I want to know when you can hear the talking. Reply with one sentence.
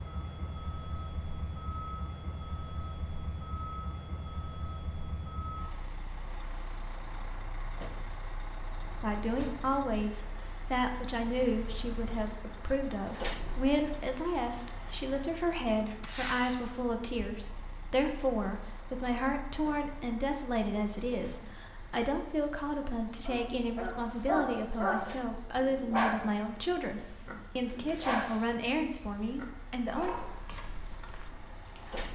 The talking can be heard from 9.0 to 30.1 s.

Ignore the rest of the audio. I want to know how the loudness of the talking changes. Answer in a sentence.
The loudness of the talking stays about the same.